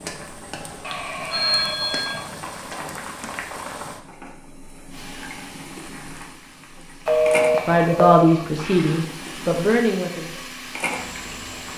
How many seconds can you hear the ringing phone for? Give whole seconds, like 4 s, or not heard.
3 s.